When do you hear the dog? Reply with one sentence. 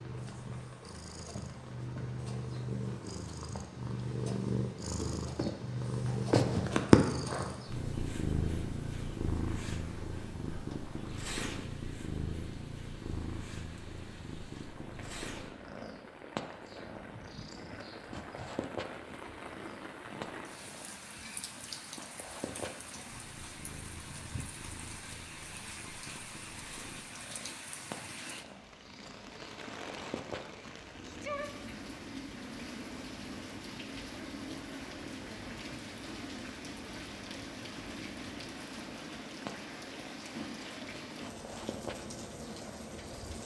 The dog can't be heard in this clip.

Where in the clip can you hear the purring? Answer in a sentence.
The purring can be heard from 0.0 to 43.4 s.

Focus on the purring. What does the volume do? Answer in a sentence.
The loudness of the purring goes down.